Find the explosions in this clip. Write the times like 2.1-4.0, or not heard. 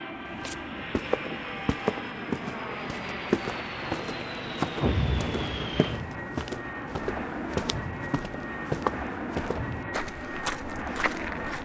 4.8-5.8.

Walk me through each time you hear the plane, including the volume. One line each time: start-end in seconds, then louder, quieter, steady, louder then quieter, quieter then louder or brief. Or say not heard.
0.0-11.6 steady.